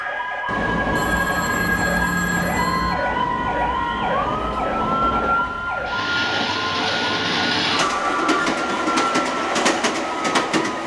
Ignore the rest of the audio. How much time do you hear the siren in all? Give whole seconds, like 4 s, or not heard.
11 s.